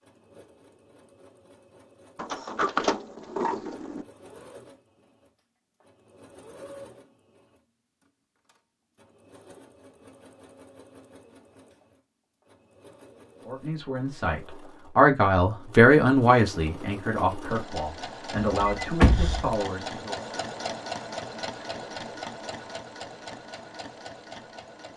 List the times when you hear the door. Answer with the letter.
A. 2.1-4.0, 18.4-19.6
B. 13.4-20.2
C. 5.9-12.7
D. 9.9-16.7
A.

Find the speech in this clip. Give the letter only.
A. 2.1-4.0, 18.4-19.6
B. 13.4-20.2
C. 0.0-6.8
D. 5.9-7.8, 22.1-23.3
B.